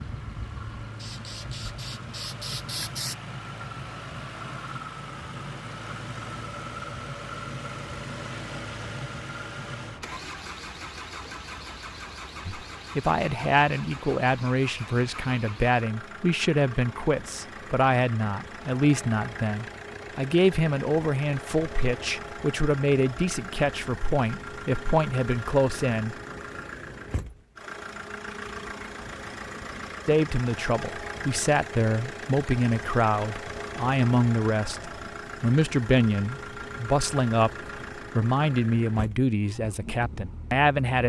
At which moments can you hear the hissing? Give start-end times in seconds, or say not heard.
0.0-3.1.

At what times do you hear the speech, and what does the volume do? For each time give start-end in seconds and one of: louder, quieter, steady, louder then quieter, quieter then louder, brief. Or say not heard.
12.4-26.1 steady
30.1-37.5 steady
38.1-41.0 brief.